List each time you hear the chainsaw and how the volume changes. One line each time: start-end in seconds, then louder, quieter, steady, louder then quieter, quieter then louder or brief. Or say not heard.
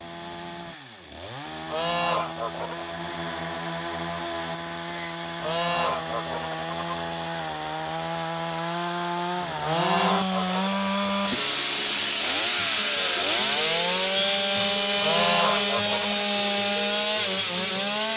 0.0-18.1 louder.